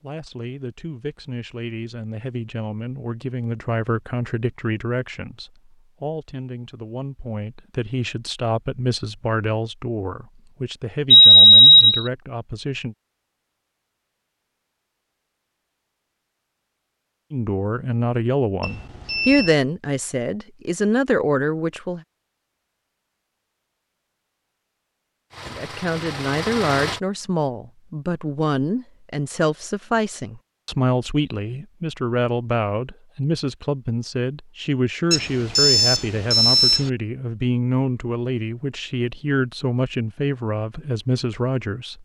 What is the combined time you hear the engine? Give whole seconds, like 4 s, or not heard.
2 s.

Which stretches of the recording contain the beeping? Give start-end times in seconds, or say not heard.
11.1-12.1, 18.6-19.6, 35.1-36.9.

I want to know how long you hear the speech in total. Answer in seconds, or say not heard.
34 s.